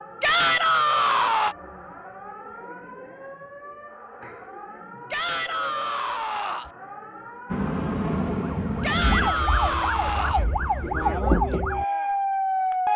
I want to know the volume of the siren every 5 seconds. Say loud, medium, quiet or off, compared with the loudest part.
quiet, medium, loud.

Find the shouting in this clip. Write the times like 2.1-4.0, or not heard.
0.2-1.6, 5.1-6.7, 8.8-10.4.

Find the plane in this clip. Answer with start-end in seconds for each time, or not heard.
7.5-9.3.